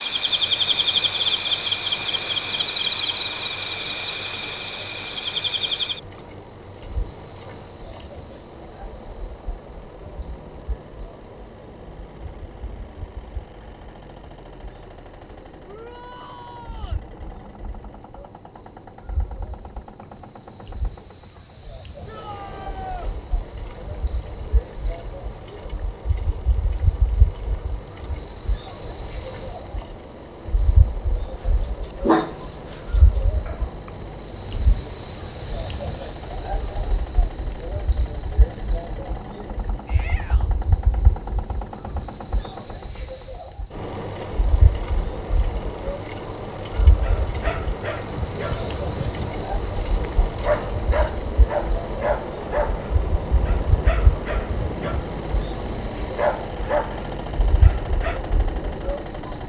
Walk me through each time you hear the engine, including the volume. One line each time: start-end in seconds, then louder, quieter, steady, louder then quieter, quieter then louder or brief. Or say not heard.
0.0-59.4 louder.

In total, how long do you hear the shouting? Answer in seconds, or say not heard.
3 s.